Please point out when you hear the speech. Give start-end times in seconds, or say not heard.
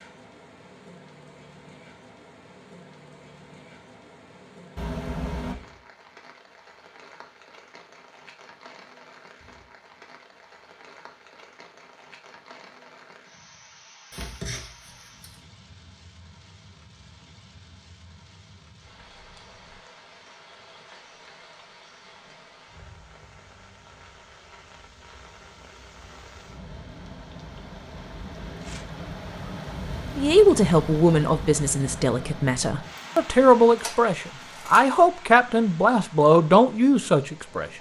30.1-37.7.